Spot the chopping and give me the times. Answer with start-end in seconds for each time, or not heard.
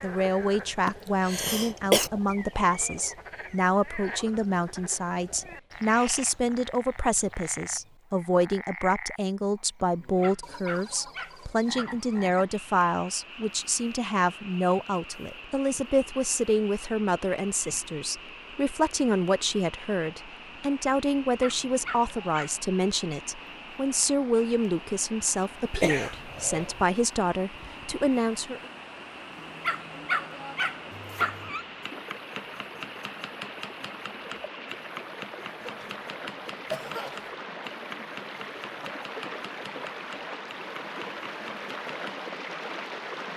30.9-42.2.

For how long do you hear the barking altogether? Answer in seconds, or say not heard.
6 s.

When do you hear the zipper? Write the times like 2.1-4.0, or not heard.
not heard.